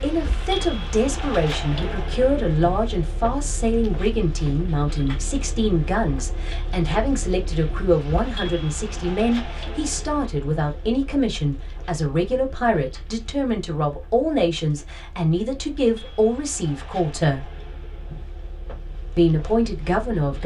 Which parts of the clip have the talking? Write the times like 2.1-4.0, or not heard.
0.0-17.5, 19.1-20.4.